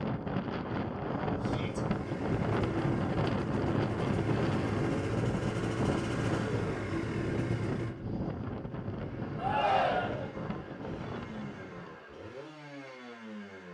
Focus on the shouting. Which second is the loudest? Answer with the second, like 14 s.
10 s.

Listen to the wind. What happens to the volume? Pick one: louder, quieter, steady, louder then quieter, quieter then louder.
quieter.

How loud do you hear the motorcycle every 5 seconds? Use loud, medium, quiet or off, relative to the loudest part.
loud, loud, medium.